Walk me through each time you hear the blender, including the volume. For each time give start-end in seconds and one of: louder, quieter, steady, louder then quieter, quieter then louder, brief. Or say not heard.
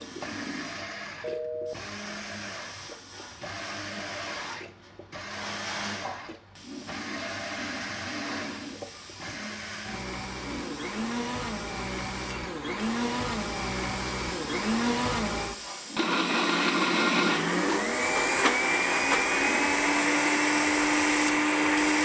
0.0-21.9 louder.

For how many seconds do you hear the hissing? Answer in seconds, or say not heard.
22 s.